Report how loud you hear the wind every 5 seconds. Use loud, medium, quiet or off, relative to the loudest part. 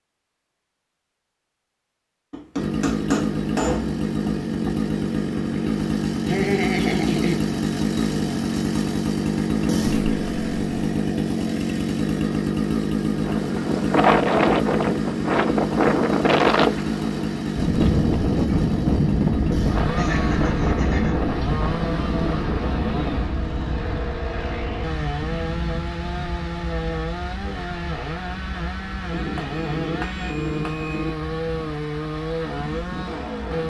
off, off, loud, loud, medium, quiet, quiet.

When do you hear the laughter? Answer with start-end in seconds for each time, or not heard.
6.2-7.5, 19.9-21.5.